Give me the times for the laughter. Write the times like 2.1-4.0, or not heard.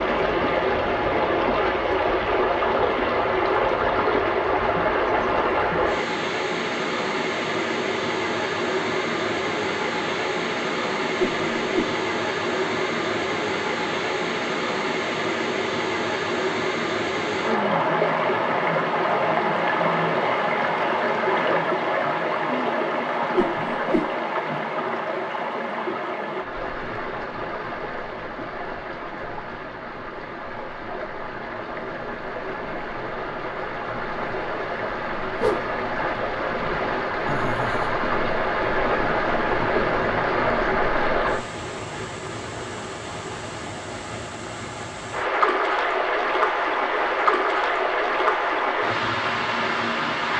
37.2-38.0.